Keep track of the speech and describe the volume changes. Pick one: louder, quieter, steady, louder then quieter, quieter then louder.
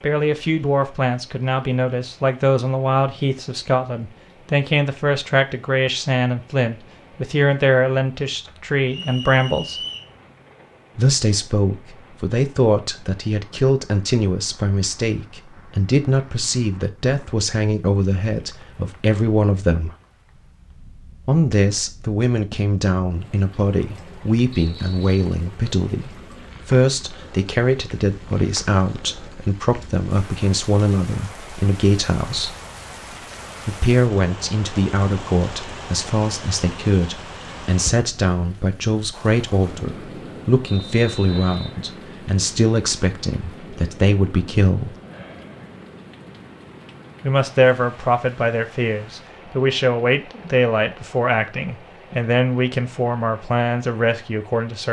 steady.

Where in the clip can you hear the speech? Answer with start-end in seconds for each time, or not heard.
0.0-9.8, 10.9-19.9, 21.2-32.5, 33.6-45.0, 47.2-54.8.